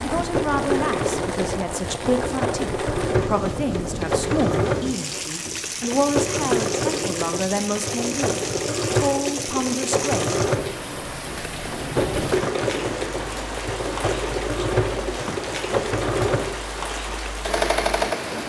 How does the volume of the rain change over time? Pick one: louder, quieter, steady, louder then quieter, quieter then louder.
steady.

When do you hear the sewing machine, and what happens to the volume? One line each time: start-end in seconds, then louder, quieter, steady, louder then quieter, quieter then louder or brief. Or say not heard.
0.1-18.4 steady.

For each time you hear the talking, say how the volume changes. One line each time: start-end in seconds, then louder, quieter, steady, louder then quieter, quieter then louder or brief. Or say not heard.
0.0-10.3 steady.